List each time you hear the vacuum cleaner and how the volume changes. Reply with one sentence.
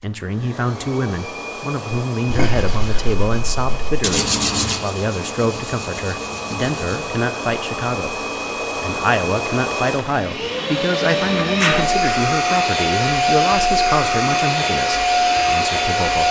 The vacuum cleaner can be heard from 0.0 to 16.2 s, getting louder.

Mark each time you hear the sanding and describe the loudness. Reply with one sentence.
The sanding can be heard from 2.2 to 7.1 s, getting louder then quieter.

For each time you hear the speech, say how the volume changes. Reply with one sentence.
You can hear the speech from 0.0 to 16.2 s, at a steady volume.